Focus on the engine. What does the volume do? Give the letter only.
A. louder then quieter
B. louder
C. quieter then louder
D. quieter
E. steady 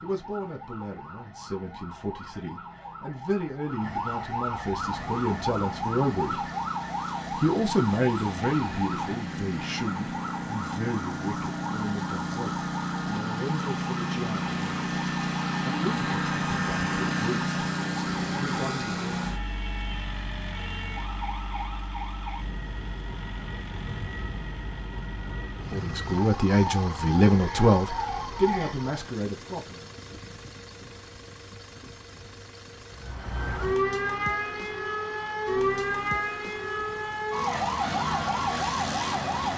A.